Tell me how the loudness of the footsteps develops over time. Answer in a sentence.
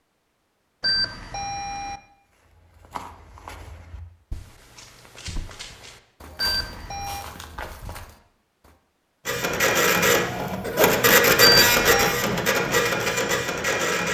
The loudness of the footsteps goes down, then up.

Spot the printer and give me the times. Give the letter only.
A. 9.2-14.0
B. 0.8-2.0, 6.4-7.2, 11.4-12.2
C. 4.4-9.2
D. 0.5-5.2
A.